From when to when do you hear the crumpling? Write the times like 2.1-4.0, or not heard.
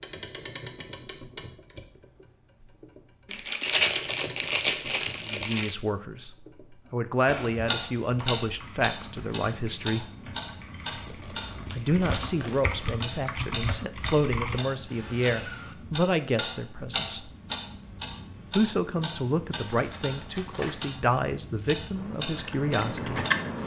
3.3-5.8, 10.8-12.9, 19.6-20.9.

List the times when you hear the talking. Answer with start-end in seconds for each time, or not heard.
5.2-6.3, 6.9-10.1, 11.7-17.3, 18.6-23.2.